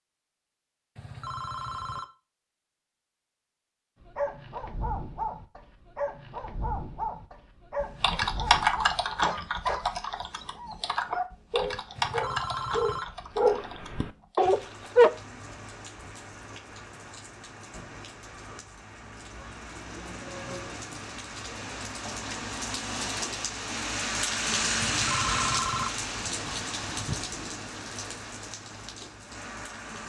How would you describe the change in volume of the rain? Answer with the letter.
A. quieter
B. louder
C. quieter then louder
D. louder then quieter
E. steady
D.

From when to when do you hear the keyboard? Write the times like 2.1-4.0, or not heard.
7.8-14.4.